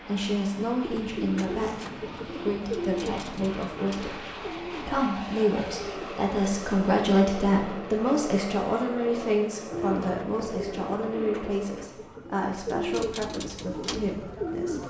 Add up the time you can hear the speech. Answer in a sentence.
The speech can be heard for 15 seconds in total.